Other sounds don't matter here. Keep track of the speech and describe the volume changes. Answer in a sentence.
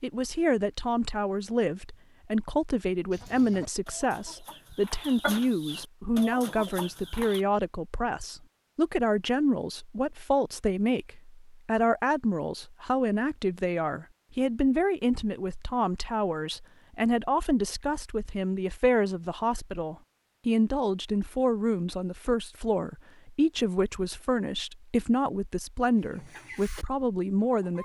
The volume of the speech stays about the same.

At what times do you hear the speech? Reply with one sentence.
The speech can be heard from 0.0 to 27.7 s.